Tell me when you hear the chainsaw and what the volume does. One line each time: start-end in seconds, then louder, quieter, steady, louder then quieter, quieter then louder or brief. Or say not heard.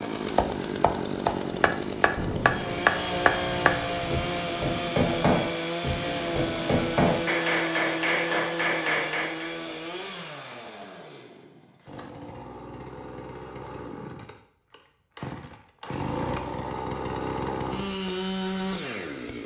0.0-19.4 quieter then louder.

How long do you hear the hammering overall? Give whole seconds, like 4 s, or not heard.
9 s.